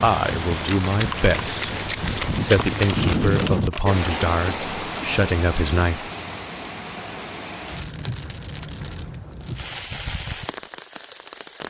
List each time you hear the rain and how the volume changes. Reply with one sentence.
You can hear the rain from 0.0 to 11.6 s, getting quieter.